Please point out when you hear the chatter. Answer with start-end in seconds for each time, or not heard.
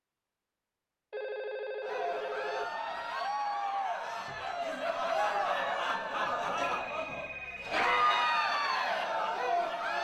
1.8-9.9.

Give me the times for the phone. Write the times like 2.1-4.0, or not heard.
1.1-2.6, 6.7-8.1.